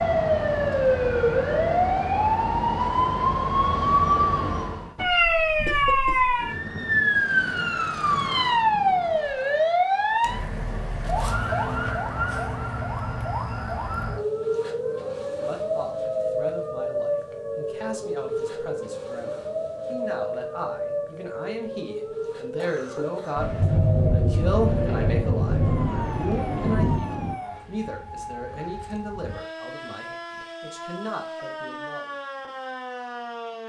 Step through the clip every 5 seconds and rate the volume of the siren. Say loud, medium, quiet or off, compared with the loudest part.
loud, loud, medium, medium, medium, quiet, quiet.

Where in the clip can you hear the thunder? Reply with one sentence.
The thunder can be heard from 6.5 to 9.4 s and from 23.4 to 27.4 s.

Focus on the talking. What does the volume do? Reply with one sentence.
The volume of the talking goes up, then down.